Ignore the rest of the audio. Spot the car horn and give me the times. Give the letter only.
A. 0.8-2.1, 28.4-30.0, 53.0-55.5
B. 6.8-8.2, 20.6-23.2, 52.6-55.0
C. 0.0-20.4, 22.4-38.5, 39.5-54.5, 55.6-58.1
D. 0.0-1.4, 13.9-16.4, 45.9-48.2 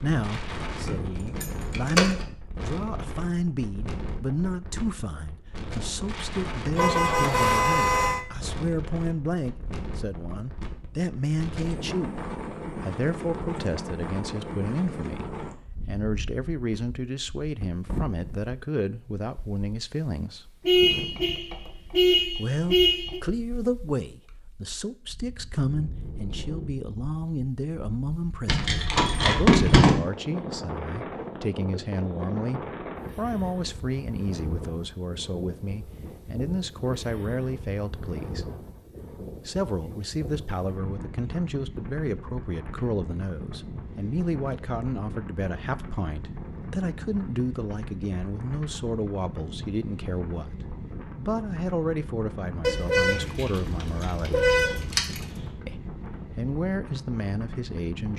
B.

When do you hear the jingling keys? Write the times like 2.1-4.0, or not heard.
0.8-2.1, 28.4-30.0, 53.0-55.5.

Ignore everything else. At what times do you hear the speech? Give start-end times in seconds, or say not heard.
0.0-20.4, 22.4-38.5, 39.5-54.5, 55.6-58.1.